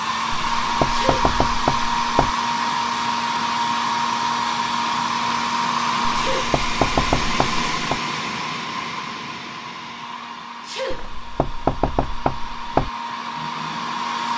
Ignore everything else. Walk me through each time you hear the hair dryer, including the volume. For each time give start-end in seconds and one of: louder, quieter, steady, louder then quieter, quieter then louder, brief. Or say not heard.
0.0-14.3 quieter.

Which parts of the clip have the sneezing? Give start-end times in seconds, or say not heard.
0.8-1.4, 6.1-6.5, 10.6-11.1.